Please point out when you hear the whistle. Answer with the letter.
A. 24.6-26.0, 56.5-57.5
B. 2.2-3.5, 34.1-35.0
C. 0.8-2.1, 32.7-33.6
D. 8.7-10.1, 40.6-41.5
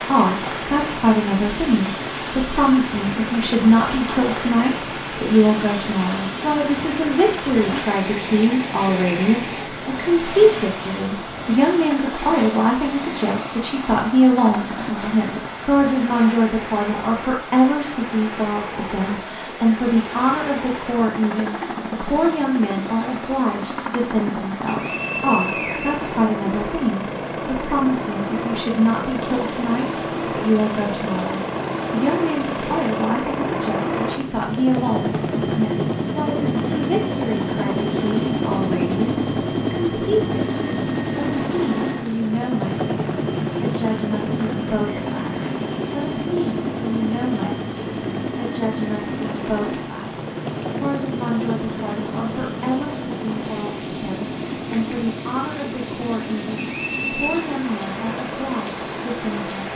A.